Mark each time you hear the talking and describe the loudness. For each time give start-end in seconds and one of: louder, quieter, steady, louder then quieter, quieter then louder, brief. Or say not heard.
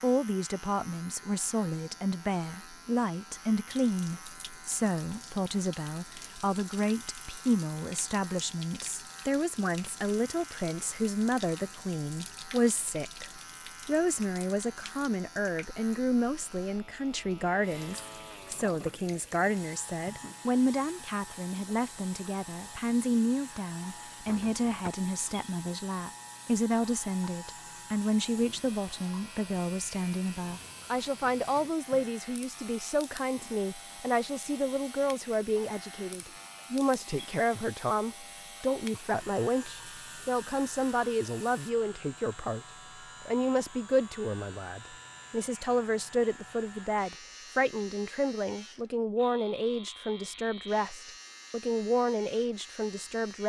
0.0-42.6 steady
43.2-53.4 steady.